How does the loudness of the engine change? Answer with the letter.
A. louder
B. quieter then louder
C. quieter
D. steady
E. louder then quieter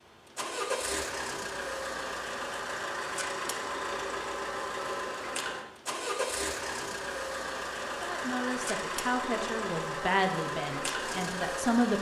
D.